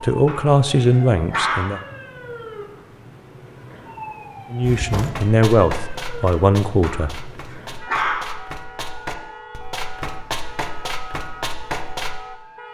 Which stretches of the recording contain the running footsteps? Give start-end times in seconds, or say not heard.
4.6-12.2.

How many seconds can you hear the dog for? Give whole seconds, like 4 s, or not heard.
3 s.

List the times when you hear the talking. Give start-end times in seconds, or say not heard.
0.0-1.8, 4.5-7.2.